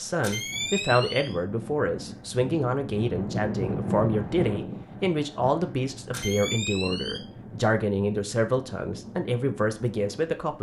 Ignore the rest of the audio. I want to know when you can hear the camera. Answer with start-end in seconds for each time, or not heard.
0.2-1.4, 6.1-7.2.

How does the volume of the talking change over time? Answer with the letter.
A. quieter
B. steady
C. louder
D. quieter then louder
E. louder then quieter
B.